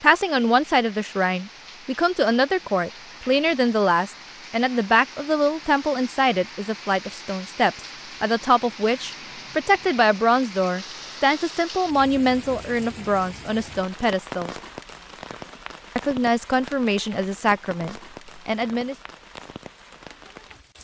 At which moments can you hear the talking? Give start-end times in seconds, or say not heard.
0.0-14.5, 15.9-18.9.